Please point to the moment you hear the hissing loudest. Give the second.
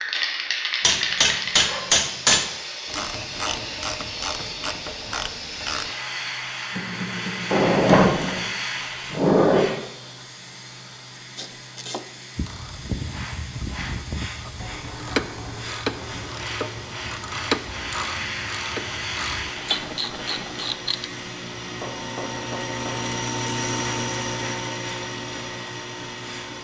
1 s.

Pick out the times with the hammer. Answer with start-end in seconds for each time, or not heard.
0.8-2.5, 6.7-8.4, 14.6-16.3, 21.6-23.1.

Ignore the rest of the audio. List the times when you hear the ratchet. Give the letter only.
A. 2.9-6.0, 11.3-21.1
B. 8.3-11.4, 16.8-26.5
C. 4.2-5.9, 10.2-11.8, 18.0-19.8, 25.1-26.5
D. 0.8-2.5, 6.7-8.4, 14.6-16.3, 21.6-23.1
A.